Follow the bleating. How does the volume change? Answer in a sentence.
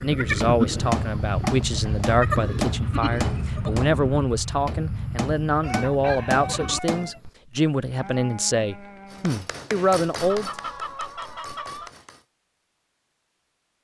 The volume of the bleating goes down.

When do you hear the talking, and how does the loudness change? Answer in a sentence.
You can hear the talking from 0.0 to 10.5 s, at a steady volume.